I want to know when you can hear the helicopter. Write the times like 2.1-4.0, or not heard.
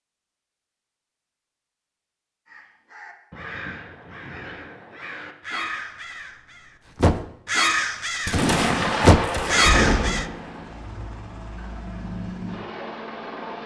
9.4-13.6.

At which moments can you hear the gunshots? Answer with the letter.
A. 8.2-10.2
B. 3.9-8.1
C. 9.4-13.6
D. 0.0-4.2
A.